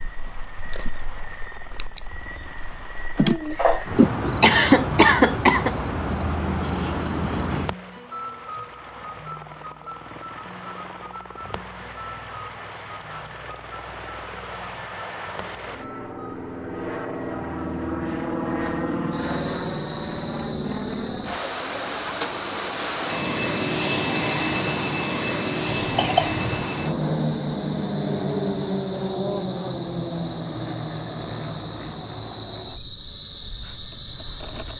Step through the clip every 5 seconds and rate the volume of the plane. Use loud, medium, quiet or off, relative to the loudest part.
quiet, quiet, quiet, loud, loud, loud, medium.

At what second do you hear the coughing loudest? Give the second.
5 s.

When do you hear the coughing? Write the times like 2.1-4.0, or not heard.
3.1-5.8, 25.8-26.6.